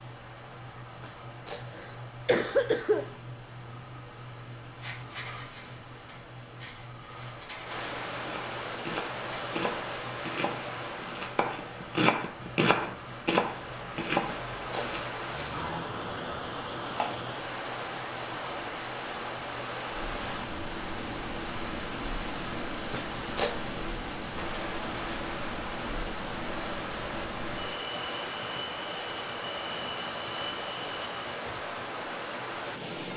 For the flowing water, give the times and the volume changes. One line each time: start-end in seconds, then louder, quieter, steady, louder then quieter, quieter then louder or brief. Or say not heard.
0.0-33.1 louder.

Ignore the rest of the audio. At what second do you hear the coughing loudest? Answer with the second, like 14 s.
2 s.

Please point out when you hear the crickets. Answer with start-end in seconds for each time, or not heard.
0.0-32.9.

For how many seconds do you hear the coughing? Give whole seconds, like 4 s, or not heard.
3 s.